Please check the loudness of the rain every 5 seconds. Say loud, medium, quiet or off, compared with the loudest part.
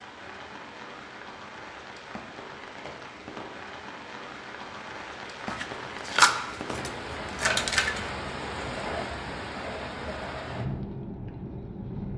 medium, loud, loud.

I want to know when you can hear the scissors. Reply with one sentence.
The scissors can be heard from 5.5 to 8.1 s.